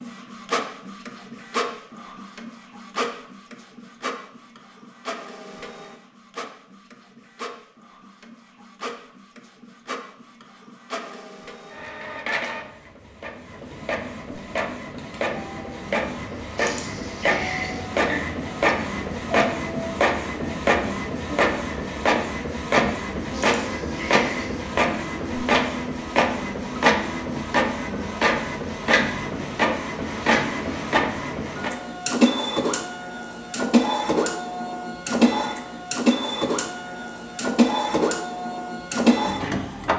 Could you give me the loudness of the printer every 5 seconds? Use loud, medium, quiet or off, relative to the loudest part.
medium, quiet, medium, loud, loud, loud, loud, loud.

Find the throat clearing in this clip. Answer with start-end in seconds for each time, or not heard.
16.6-18.2, 23.3-24.6.